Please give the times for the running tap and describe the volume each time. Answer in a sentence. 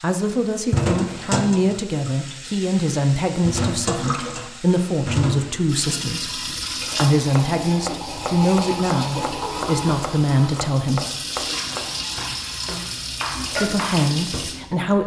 The running tap can be heard from 0.0 to 15.0 s, at a steady volume.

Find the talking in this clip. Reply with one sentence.
The talking can be heard from 0.0 to 11.1 s and from 13.6 to 15.0 s.